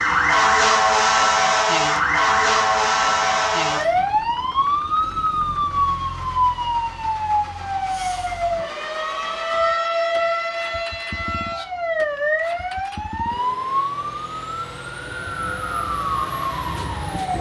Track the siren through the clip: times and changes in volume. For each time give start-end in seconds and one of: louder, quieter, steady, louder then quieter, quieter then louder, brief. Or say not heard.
0.0-17.3 quieter.